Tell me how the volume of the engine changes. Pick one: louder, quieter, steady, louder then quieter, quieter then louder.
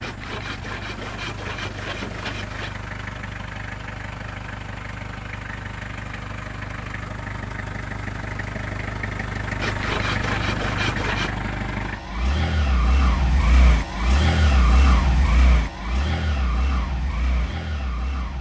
louder.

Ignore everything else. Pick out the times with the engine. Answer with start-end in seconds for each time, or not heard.
0.0-18.3.